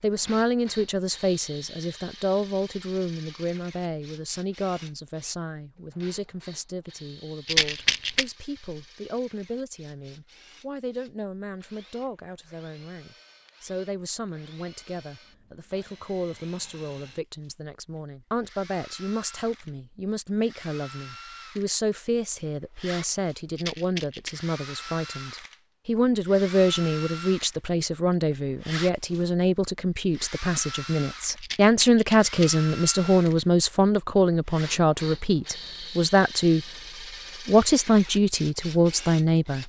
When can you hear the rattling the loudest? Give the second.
8 s.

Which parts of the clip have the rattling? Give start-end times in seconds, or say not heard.
7.5-8.2, 23.6-24.4, 31.4-32.6.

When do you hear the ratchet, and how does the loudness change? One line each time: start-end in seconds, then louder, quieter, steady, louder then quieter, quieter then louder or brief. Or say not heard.
not heard.